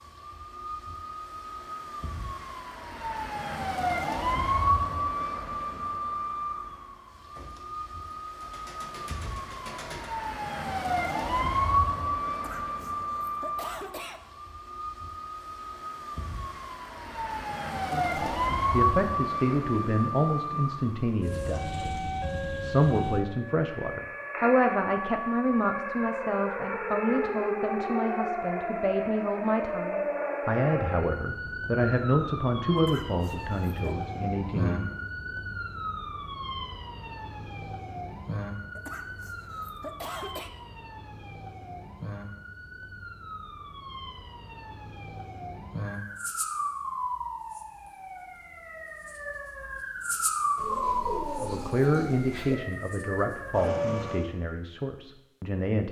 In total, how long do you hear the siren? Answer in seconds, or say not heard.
54 s.